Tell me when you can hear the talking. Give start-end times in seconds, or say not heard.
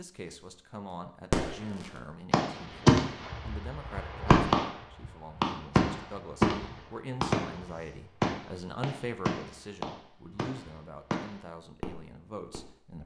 0.0-13.0.